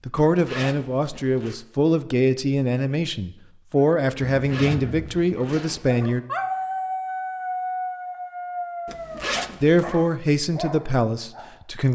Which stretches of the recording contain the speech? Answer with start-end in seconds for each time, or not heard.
0.1-6.2, 9.6-11.9.